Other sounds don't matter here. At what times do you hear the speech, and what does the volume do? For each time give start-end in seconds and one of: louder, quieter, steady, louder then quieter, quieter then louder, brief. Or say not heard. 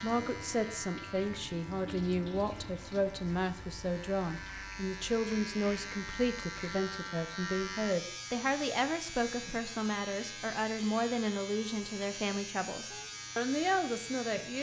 0.0-14.5 steady.